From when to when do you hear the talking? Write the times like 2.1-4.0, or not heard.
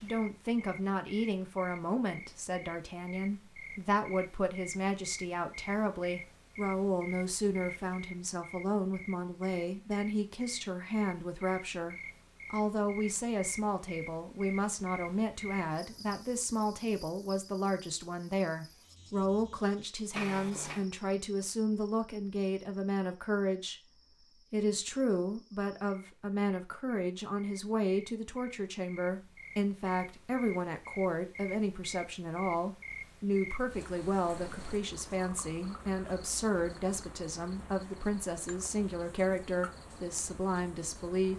0.0-23.9, 24.5-41.3.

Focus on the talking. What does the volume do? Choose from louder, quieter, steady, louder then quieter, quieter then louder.
steady.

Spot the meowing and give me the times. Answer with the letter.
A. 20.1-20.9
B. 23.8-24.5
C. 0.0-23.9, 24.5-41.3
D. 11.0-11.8
A.